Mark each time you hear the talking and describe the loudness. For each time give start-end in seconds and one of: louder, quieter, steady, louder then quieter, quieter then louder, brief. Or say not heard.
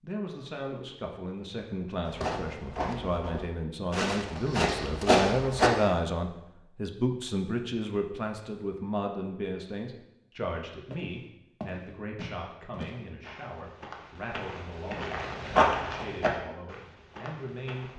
0.0-17.9 louder then quieter.